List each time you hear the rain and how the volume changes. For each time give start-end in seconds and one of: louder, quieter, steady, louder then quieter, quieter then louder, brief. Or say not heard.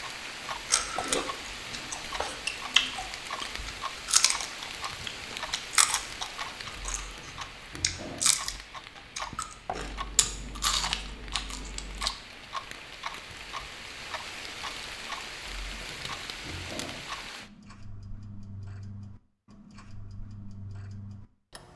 0.0-17.5 quieter then louder.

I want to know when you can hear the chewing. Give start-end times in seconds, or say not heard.
0.7-12.1.